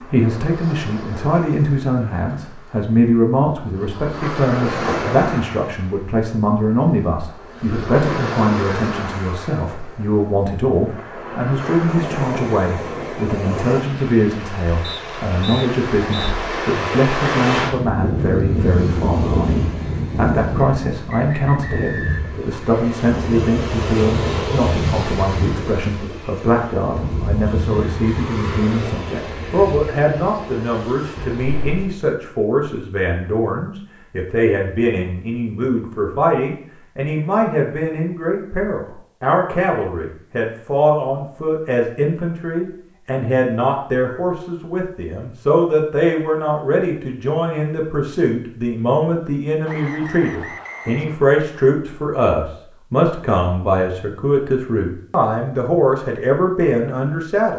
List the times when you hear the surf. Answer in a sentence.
The surf can be heard from 0.0 to 31.9 s.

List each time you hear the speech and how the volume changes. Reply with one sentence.
The speech can be heard from 0.1 to 57.5 s, at a steady volume.